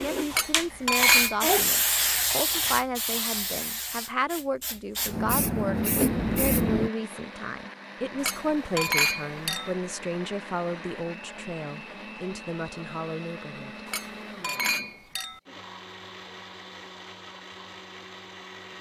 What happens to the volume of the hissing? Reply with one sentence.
The loudness of the hissing goes down, then up.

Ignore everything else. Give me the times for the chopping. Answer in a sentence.
The chopping can't be heard in this clip.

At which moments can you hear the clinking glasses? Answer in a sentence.
The clinking glasses can be heard from 0.3 to 1.4 s, from 8.2 to 9.7 s and from 13.8 to 15.4 s.